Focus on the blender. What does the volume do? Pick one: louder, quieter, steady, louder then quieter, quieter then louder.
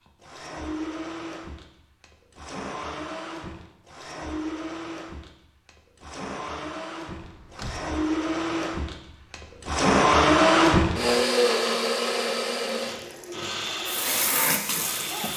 louder then quieter.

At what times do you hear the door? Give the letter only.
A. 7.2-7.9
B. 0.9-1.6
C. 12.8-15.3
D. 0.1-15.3
A.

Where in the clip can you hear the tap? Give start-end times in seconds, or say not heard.
12.8-15.3.